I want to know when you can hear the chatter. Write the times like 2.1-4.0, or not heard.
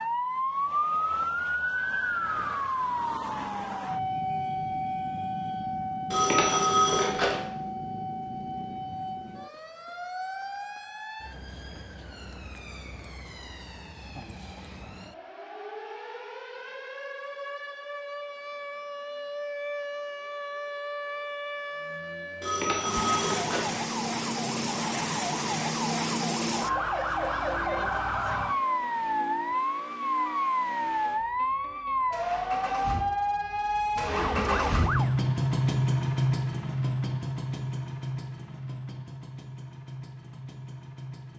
not heard.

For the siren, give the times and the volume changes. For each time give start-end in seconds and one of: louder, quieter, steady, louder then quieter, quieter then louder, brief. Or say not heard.
0.0-35.2 quieter then louder.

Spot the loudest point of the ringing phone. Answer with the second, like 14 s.
7 s.